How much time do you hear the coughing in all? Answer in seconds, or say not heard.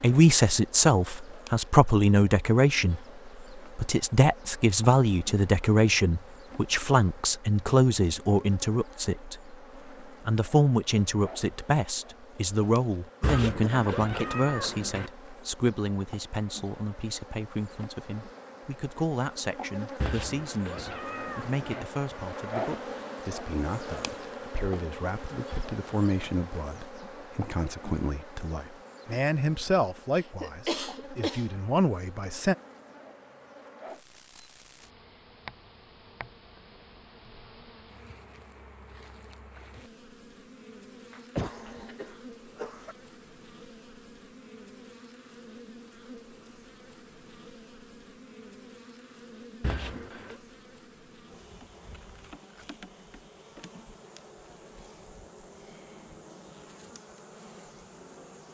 5 s.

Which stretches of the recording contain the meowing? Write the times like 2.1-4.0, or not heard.
13.2-15.1, 20.0-21.9, 49.6-50.4.